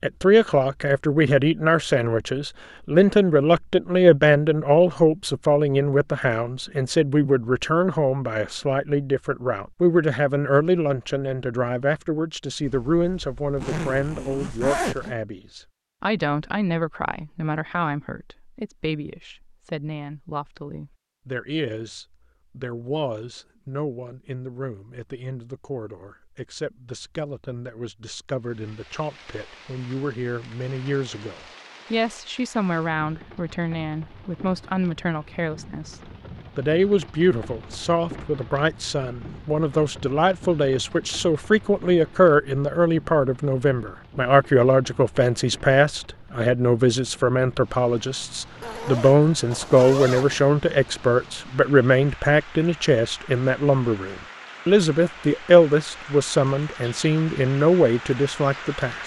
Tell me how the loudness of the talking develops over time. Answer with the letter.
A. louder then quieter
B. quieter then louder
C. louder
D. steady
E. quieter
B.